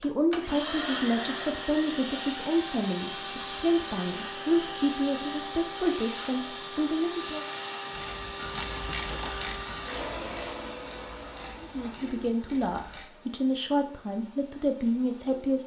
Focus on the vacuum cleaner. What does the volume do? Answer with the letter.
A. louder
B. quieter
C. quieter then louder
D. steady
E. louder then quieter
B.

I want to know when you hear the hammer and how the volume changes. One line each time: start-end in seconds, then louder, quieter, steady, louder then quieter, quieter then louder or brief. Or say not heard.
not heard.